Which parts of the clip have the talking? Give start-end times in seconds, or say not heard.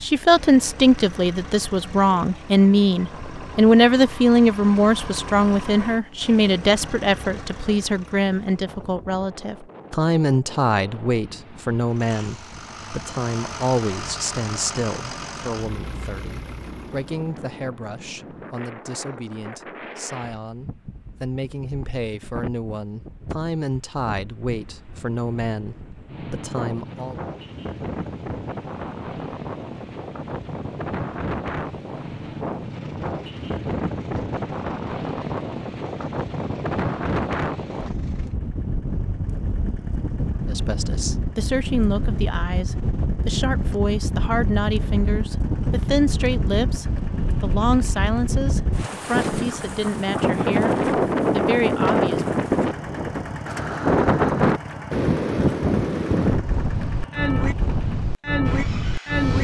0.0-27.1, 40.5-52.2.